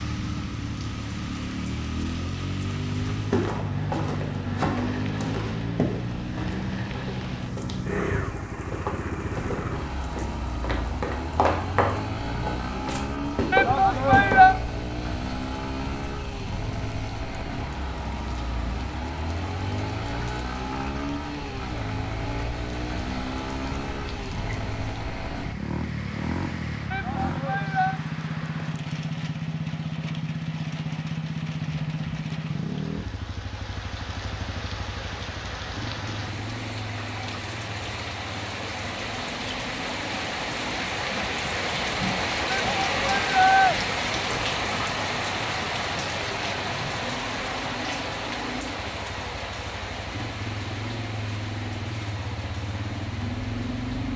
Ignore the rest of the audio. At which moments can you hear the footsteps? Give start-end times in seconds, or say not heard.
3.1-14.6.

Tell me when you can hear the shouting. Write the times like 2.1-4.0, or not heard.
13.5-14.6, 26.9-28.0, 42.5-43.8.